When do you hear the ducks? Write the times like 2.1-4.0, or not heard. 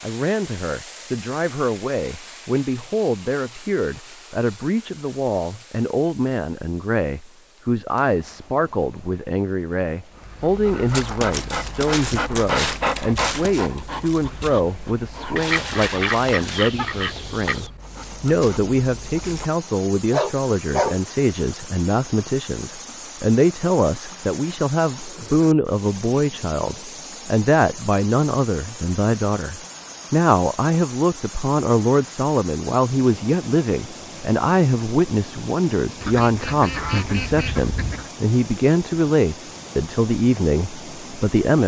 15.3-17.7, 36.0-38.1.